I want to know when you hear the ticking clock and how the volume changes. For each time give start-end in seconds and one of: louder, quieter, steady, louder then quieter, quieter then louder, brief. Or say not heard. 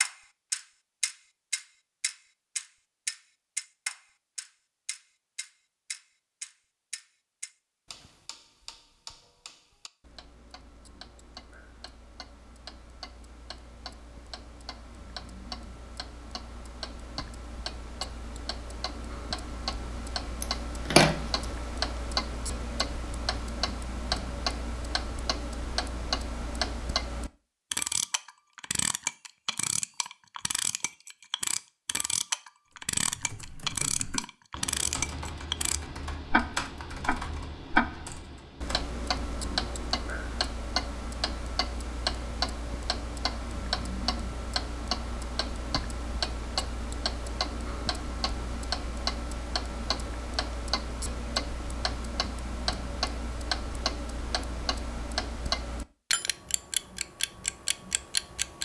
0.0-58.6 louder.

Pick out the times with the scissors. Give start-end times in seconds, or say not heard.
20.4-21.2.